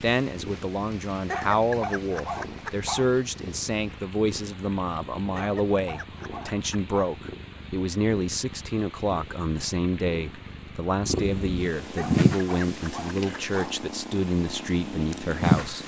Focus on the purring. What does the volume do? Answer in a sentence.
The volume of the purring goes up, then down.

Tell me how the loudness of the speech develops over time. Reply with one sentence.
The volume of the speech stays about the same.